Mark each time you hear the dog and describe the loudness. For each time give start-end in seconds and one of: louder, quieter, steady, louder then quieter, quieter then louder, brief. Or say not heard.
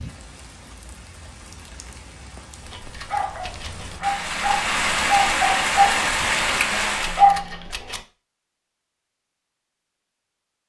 2.6-8.0 louder.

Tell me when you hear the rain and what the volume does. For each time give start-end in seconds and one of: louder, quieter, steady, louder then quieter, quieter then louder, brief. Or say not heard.
0.0-7.3 louder.